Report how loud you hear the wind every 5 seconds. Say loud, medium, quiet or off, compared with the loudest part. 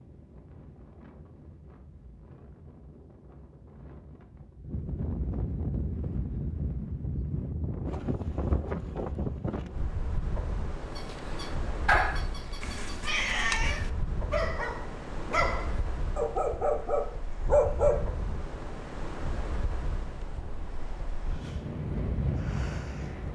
quiet, loud, medium, medium, loud.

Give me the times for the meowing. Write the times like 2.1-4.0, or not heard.
12.6-13.9.